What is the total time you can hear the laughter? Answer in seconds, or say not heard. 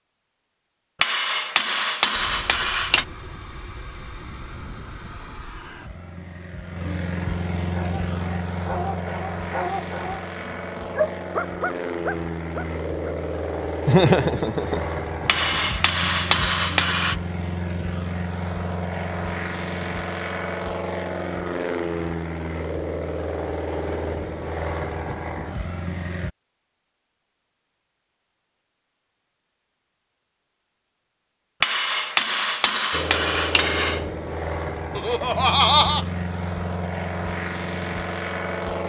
2 s.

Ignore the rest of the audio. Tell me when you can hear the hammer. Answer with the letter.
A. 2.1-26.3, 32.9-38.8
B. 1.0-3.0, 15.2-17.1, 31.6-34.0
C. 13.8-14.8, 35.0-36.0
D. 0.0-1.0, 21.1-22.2
B.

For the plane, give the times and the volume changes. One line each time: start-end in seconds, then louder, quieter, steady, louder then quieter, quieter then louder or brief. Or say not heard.
2.1-26.3 louder
32.9-38.8 steady.